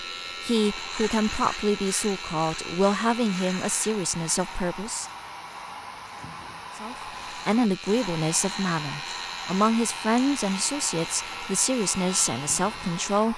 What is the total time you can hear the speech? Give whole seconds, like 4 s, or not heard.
12 s.